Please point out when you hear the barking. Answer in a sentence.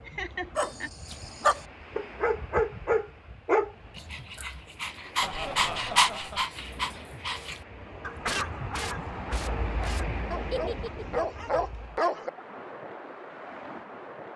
The barking can be heard from 0.6 to 12.3 s.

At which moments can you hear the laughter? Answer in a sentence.
The laughter can be heard from 0.1 to 0.9 s, from 5.2 to 6.5 s and from 10.5 to 11.1 s.